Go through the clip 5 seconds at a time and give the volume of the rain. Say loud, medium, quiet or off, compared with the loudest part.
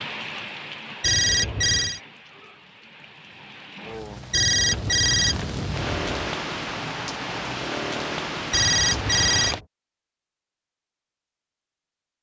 medium, loud, off.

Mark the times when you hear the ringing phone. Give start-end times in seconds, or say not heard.
1.0-2.0, 4.3-6.3, 8.5-9.7.